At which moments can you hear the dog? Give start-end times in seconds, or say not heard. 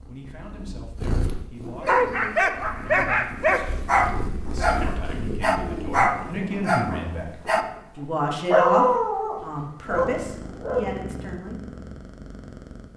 1.8-11.0.